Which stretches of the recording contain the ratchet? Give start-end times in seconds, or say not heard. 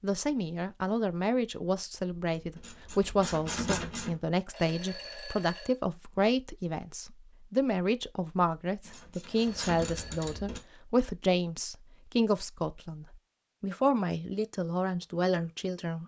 2.4-4.2, 8.8-10.6.